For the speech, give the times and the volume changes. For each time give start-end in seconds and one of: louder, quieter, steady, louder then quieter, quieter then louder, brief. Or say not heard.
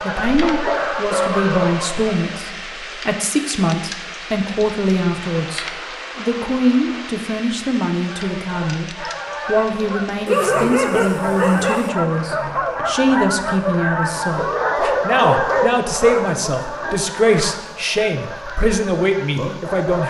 0.0-20.0 steady.